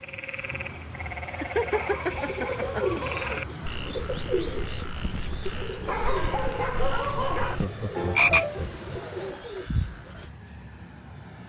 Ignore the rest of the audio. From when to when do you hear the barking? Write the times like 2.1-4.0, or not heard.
1.7-3.4, 5.8-7.5.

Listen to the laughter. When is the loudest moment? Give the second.
2 s.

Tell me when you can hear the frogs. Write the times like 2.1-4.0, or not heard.
0.0-8.7.